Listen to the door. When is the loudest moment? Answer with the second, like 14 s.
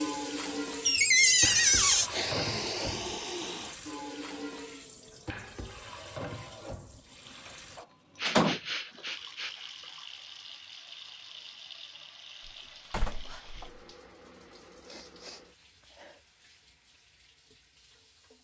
1 s.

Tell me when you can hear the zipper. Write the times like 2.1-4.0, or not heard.
not heard.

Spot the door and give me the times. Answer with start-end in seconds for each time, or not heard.
0.8-2.1, 7.8-8.6, 12.4-13.8.